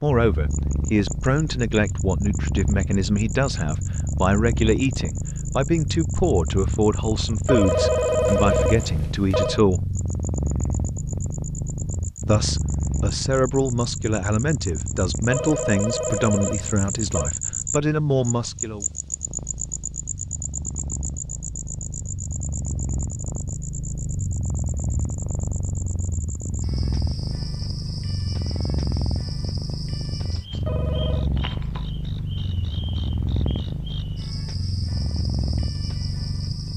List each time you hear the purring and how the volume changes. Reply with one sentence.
You can hear the purring from 0.1 to 36.7 s, getting quieter then louder.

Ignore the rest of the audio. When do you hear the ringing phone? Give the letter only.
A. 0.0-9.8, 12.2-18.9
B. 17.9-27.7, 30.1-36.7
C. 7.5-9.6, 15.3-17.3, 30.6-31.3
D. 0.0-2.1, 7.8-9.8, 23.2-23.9
C.